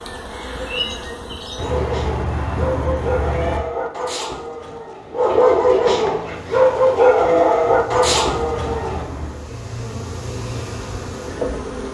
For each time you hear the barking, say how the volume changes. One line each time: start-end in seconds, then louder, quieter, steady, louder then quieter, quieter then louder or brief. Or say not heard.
1.6-9.1 louder.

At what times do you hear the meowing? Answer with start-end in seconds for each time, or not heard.
1.6-3.6, 8.0-9.5.